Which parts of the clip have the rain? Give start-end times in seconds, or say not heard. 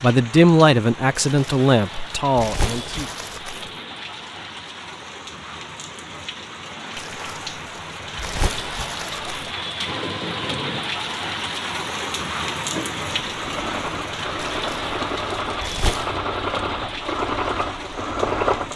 0.0-18.7.